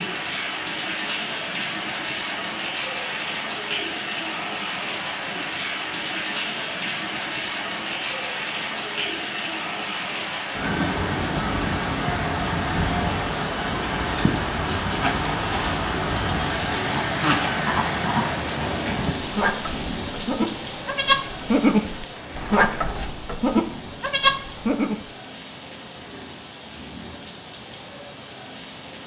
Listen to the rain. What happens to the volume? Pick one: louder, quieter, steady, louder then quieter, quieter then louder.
quieter.